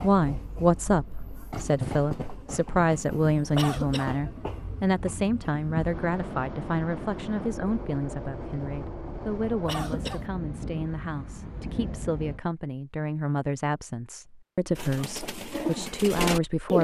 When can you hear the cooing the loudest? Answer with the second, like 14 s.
16 s.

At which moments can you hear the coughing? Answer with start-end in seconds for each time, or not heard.
3.5-4.2, 9.7-10.3.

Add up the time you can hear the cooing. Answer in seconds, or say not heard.
2 s.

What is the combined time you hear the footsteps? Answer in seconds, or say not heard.
not heard.